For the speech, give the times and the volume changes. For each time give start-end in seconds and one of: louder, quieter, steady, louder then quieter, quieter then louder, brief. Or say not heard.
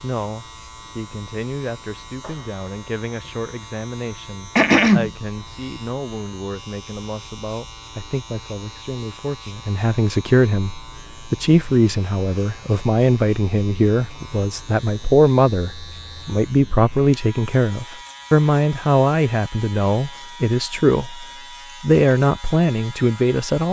0.0-23.6 louder.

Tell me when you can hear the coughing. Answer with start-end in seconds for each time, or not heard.
4.5-5.1.